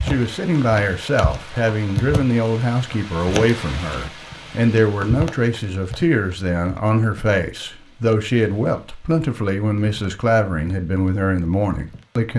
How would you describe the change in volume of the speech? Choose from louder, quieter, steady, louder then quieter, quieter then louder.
steady.